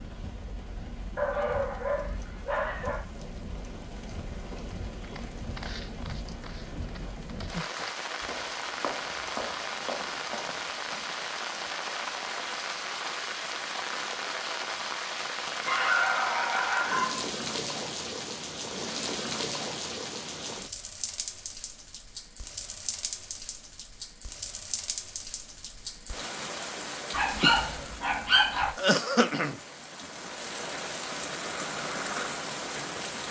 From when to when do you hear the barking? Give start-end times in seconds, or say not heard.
1.1-3.0, 15.7-17.2, 27.1-28.7.